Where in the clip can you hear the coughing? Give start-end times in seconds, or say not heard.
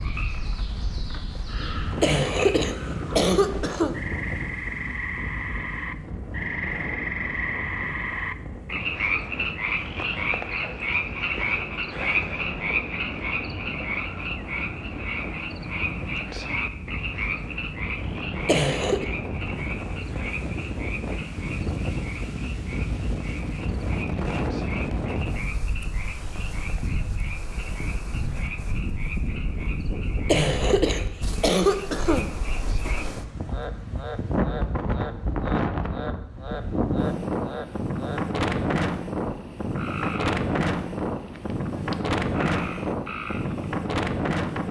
2.0-4.0, 18.4-19.1, 30.2-32.3.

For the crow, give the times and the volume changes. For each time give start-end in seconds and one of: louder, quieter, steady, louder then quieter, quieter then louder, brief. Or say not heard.
not heard.